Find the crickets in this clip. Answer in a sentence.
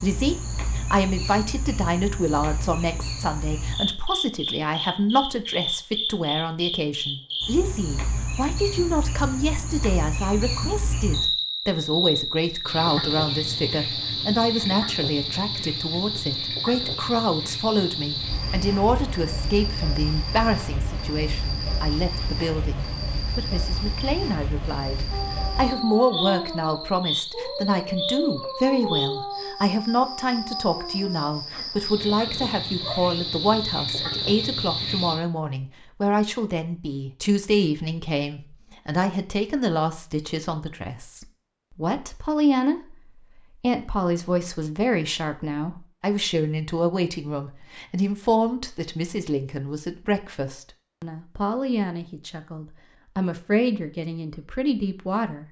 The crickets can be heard from 0.0 to 35.1 s.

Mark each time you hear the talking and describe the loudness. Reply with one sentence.
You can hear the talking from 0.0 to 55.4 s, at a steady volume.